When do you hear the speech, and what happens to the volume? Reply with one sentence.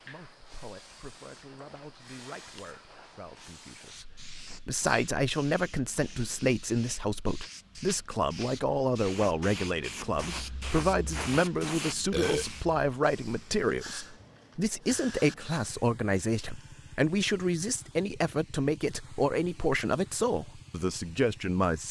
The speech can be heard from 0.0 to 21.8 s, getting louder.